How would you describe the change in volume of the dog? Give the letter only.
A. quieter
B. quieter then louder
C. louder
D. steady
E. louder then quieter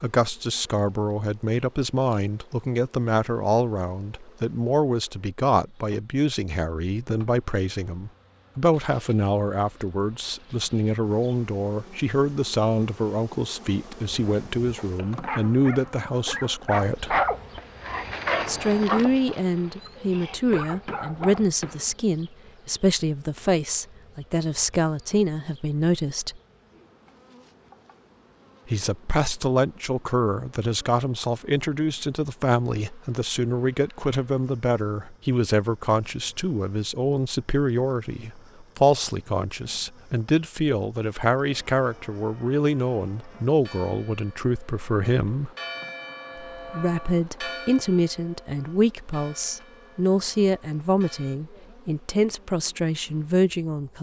E.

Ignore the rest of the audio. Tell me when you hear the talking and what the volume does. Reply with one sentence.
The talking can be heard from 0.0 to 17.2 s, at a steady volume; from 18.4 to 26.4 s, at a steady volume; from 28.6 to 45.5 s, at a steady volume; and from 46.5 to 53.9 s, at a steady volume.